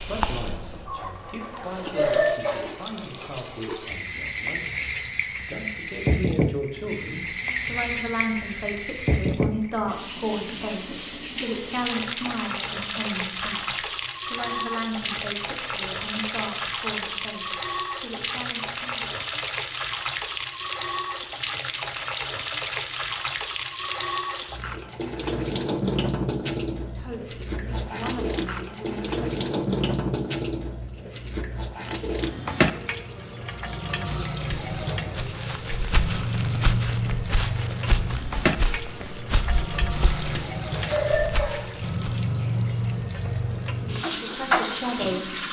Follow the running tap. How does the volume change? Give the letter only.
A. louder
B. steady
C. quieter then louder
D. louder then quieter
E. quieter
B.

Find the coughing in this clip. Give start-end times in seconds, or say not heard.
1.9-2.6, 40.9-41.6.